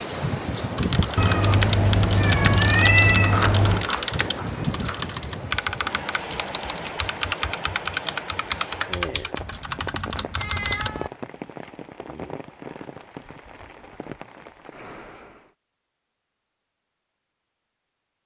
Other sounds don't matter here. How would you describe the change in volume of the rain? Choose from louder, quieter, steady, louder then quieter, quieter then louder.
quieter.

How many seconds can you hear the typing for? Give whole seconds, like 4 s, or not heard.
10 s.